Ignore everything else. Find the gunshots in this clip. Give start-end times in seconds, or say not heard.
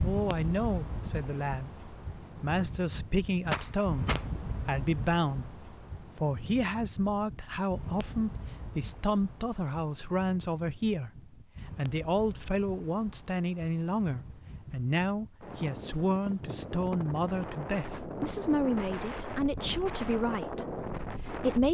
3.5-4.2.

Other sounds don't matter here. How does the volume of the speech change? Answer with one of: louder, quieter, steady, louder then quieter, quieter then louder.
steady.